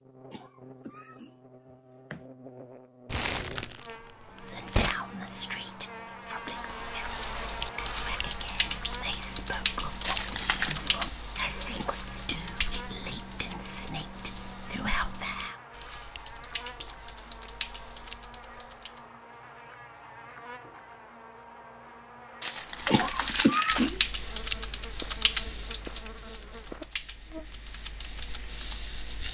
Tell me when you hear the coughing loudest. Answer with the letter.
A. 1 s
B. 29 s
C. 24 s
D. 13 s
C.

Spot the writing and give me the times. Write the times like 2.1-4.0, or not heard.
not heard.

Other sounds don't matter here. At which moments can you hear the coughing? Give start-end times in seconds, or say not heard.
0.2-2.2, 11.7-12.4, 22.9-24.0.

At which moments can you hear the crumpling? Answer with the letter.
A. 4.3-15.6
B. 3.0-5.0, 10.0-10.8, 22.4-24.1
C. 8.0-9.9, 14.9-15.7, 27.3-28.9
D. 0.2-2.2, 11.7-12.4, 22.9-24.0
B.